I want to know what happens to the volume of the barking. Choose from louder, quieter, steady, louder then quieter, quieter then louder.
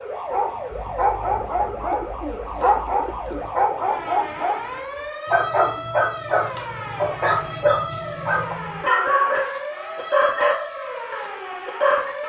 steady.